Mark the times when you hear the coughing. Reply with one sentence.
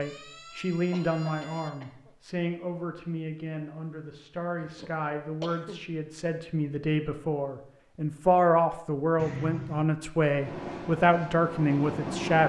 You can hear the coughing from 0.9 to 2.1 s, from 4.6 to 5.8 s and from 9.2 to 9.8 s.